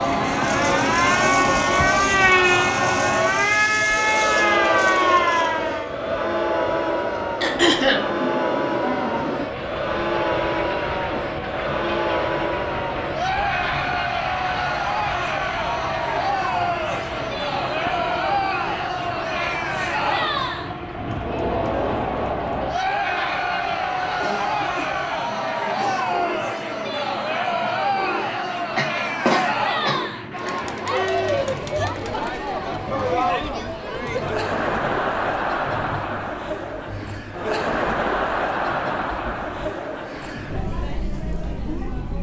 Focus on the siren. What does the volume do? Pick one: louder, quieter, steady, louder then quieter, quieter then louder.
steady.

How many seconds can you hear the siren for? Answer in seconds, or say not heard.
6 s.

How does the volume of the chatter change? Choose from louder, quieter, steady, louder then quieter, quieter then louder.
steady.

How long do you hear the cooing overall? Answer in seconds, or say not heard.
not heard.